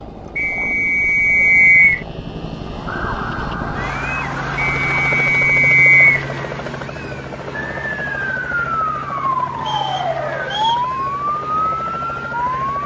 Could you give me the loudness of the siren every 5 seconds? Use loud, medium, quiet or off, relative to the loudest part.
medium, loud, loud.